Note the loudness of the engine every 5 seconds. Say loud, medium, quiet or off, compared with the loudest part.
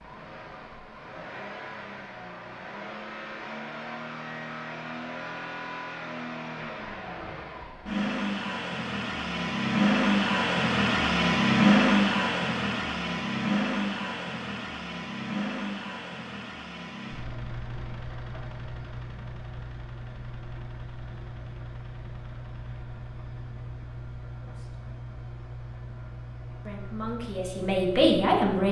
quiet, medium, loud, quiet, quiet, quiet.